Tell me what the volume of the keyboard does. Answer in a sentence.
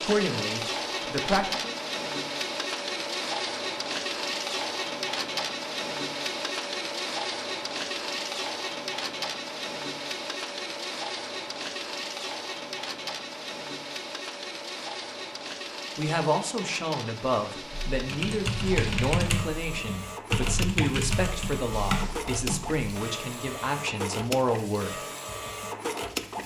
The loudness of the keyboard stays about the same.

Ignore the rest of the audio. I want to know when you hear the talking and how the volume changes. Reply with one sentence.
The talking can be heard briefly from 0.0 to 1.7 s; and from 15.9 to 25.0 s, at a steady volume.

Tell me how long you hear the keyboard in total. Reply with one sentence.
You can hear the keyboard for 5 seconds altogether.